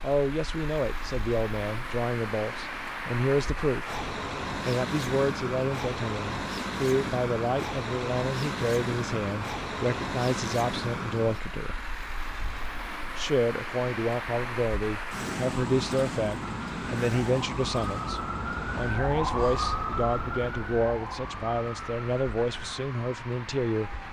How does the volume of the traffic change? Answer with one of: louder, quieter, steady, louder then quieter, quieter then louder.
quieter.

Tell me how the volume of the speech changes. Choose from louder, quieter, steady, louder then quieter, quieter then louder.
steady.